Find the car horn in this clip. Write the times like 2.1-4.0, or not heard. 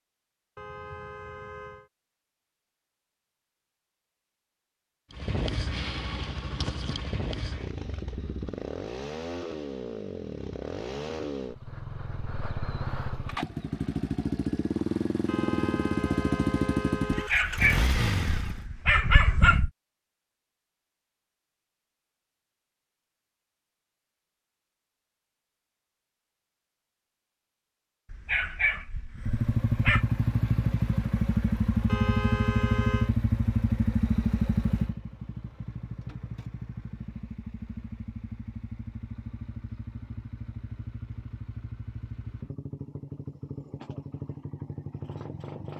0.6-1.9, 15.2-17.3, 31.9-33.1.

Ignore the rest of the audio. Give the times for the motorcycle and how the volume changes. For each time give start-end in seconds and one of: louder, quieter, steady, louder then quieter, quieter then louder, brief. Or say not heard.
5.1-18.6 louder
29.1-45.7 quieter.